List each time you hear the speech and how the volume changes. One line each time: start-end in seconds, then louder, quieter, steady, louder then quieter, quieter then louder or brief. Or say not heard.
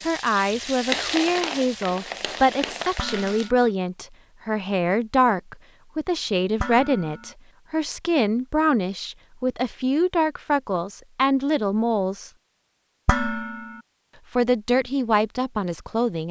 0.0-12.3 steady
14.3-16.2 brief.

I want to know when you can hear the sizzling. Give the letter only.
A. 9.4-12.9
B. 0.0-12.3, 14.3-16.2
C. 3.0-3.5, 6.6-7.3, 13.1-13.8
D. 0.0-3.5
D.